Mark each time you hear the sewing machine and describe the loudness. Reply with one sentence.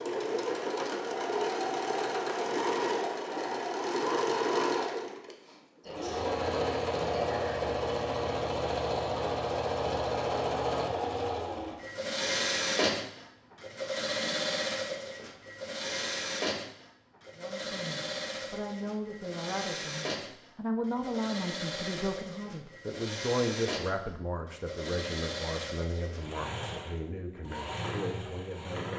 The sewing machine can be heard from 0.0 to 28.9 s, getting quieter.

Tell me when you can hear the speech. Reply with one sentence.
You can hear the speech from 17.4 to 28.9 s.